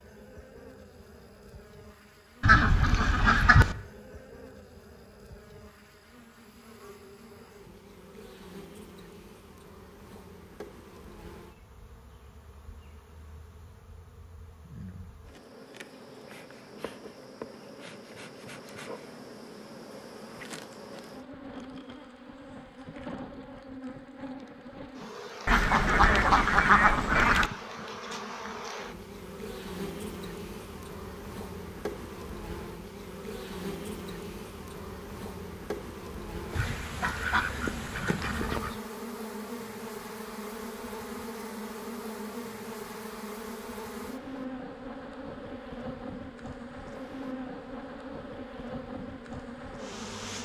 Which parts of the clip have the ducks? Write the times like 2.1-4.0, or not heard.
2.4-3.8, 25.4-27.5, 36.5-38.8.